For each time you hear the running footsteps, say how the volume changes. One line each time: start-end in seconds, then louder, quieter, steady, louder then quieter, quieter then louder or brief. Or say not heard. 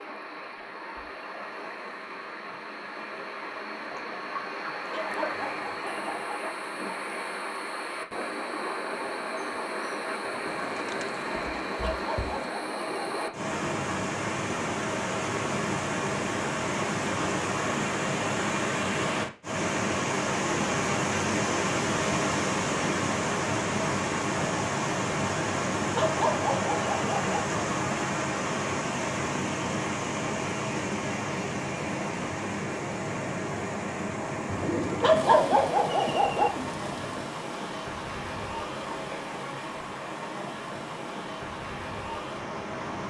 not heard.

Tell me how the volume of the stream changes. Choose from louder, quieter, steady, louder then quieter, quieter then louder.
louder then quieter.